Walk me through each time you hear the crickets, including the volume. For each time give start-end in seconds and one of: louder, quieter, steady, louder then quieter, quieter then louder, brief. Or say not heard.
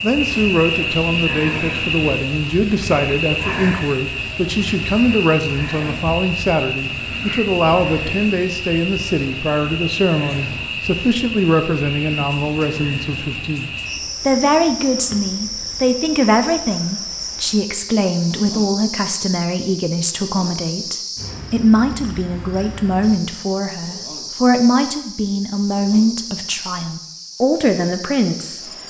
0.0-28.8 quieter.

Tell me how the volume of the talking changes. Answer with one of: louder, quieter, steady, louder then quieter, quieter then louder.
steady.